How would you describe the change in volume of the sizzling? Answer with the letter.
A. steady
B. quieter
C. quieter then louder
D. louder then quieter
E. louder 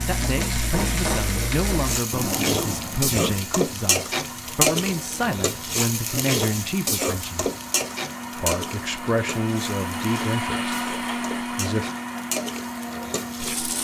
B.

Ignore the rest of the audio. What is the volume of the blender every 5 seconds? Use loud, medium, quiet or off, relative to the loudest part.
medium, medium, loud.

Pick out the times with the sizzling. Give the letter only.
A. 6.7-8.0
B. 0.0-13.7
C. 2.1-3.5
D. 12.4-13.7
B.